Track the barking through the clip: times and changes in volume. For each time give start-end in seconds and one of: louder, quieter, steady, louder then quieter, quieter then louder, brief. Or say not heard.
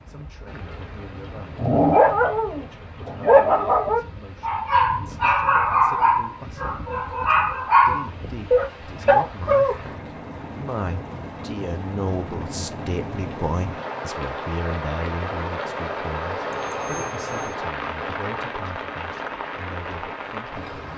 1.6-9.8 steady.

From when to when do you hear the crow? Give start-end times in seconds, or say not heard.
not heard.